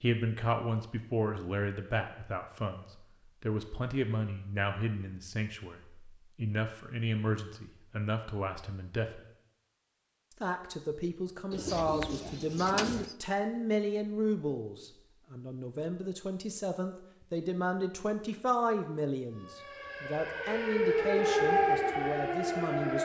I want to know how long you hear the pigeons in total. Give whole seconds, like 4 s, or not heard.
2 s.